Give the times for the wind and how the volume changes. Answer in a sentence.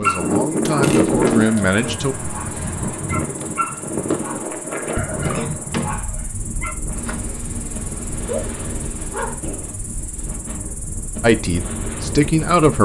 You can hear the wind from 0.0 to 12.8 s, getting quieter.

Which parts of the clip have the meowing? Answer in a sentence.
You can hear the meowing from 0.9 to 1.6 s and from 7.0 to 9.4 s.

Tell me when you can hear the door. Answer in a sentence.
The door can be heard from 0.7 to 1.1 s, from 5.2 to 6.1 s and from 9.4 to 10.4 s.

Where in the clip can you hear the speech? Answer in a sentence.
The speech can be heard from 0.0 to 2.1 s and from 11.2 to 12.8 s.